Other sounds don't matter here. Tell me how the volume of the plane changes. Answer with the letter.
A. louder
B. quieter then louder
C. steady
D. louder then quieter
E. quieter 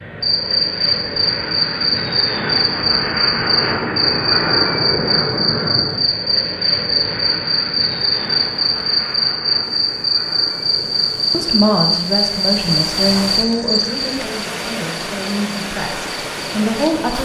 E.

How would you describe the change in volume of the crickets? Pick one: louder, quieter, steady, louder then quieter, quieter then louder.
quieter.